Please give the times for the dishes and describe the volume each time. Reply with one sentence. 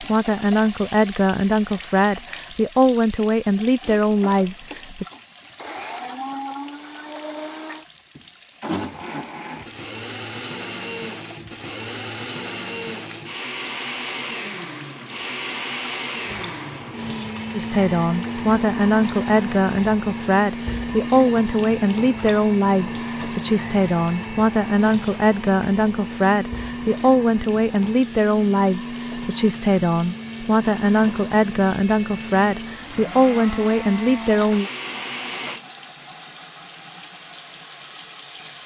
The dishes can't be heard in this clip.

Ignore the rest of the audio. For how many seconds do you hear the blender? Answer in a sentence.
You can hear the blender for 32 seconds altogether.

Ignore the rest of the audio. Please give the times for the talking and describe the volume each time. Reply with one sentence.
The talking can be heard from 0.0 to 5.0 s, at a steady volume; and from 17.5 to 34.7 s, at a steady volume.